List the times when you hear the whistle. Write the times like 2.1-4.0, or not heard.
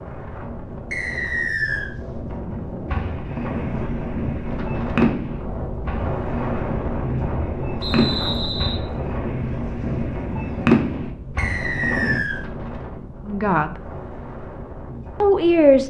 0.9-1.9, 7.8-8.8, 11.3-12.4.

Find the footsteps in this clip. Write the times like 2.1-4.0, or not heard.
not heard.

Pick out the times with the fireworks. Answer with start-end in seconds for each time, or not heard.
2.9-12.2.